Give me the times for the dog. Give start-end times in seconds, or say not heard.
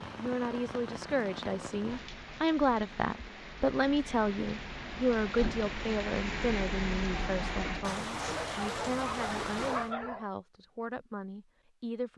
8.2-10.2.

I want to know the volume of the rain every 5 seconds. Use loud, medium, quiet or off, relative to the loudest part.
medium, loud, off.